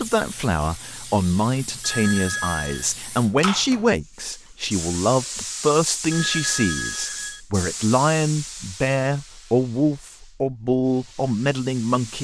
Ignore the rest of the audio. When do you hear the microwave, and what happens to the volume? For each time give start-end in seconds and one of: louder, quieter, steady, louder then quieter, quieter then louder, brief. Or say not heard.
not heard.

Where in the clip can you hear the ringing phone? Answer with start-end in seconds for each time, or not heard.
1.8-2.9, 6.1-7.4.